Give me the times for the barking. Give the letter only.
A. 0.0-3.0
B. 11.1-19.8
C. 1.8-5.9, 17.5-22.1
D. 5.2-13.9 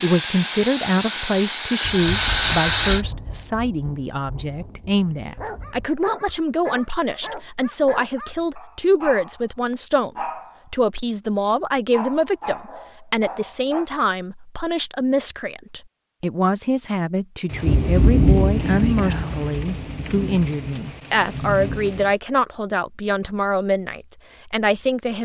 D.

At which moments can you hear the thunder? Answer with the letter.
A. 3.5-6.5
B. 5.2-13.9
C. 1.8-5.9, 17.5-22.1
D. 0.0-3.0
C.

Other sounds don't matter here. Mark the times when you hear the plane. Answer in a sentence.
You can hear the plane from 0.0 to 3.0 s.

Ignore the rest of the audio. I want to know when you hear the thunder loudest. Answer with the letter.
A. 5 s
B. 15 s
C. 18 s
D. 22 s
C.